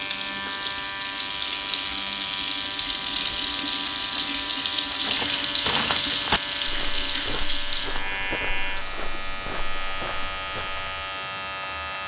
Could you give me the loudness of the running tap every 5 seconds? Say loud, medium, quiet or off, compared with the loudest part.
loud, loud, quiet.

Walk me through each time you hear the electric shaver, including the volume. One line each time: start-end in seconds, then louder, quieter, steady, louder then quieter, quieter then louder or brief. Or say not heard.
0.0-12.0 steady.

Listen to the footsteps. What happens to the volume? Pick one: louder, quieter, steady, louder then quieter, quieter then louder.
quieter.